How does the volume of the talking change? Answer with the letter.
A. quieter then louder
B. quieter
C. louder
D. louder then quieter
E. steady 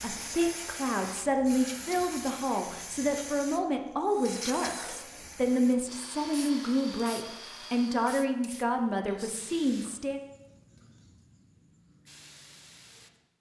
E.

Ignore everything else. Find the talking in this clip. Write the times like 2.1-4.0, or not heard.
0.0-10.2.